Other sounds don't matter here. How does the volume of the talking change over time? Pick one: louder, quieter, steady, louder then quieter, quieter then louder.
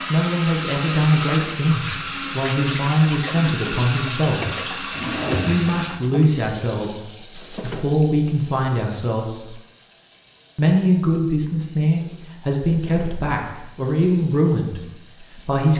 steady.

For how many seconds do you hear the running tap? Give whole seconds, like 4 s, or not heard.
16 s.